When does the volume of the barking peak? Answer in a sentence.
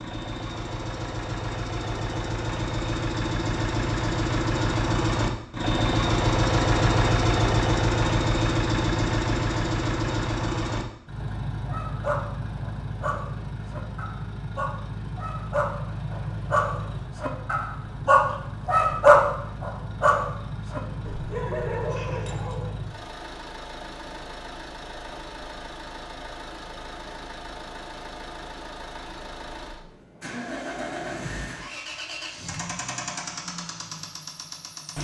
The volume of the barking peaks at 19 seconds.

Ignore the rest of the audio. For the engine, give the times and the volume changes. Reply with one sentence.
The engine can be heard from 0.0 to 34.9 s, getting quieter.